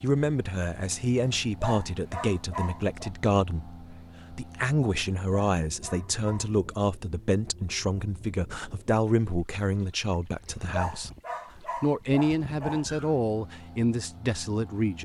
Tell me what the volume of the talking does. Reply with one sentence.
The volume of the talking stays about the same.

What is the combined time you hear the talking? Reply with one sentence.
The talking can be heard for 14 seconds in total.